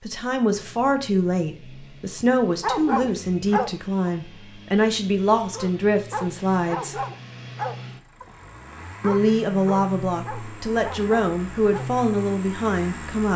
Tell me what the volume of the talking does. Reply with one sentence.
The loudness of the talking stays about the same.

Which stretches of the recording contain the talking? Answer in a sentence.
You can hear the talking from 0.1 to 7.0 s and from 9.0 to 13.3 s.